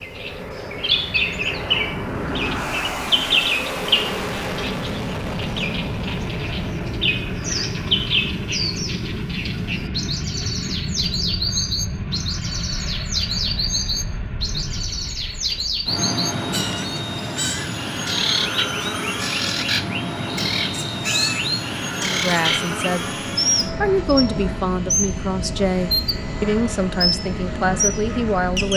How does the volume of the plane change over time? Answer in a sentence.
The loudness of the plane stays about the same.